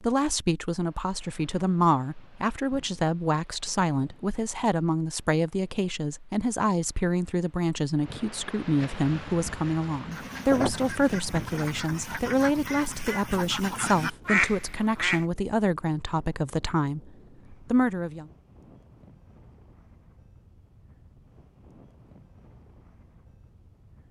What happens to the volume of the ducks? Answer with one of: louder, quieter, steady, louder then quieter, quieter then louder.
louder.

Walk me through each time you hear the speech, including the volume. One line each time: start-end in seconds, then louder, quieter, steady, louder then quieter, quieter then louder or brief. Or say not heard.
0.0-18.2 steady.